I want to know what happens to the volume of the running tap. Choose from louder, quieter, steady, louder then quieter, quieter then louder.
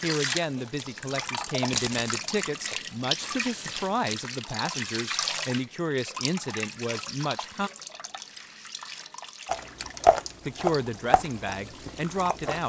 quieter.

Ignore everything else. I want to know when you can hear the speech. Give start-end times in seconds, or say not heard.
0.0-7.7, 10.4-12.6.